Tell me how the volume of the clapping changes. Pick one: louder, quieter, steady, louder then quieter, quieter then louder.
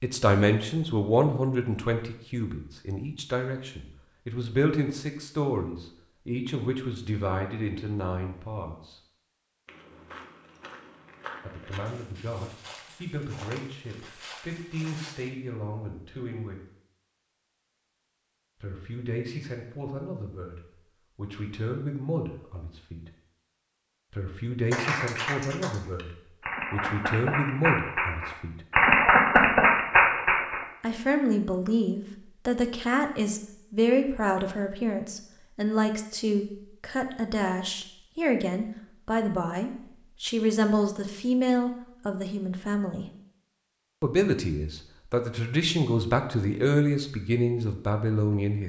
louder.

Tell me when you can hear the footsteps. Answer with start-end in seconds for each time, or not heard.
9.7-15.3.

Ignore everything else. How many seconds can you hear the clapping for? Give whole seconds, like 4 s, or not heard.
6 s.